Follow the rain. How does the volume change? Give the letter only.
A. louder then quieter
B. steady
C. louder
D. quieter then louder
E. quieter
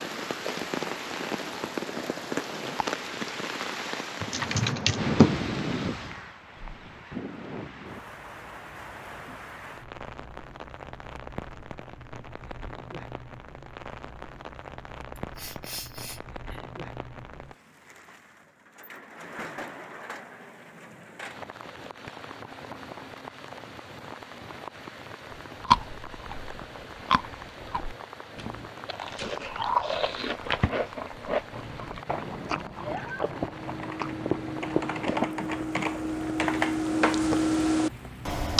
E.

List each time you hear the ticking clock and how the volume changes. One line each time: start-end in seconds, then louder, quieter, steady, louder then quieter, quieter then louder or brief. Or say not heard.
not heard.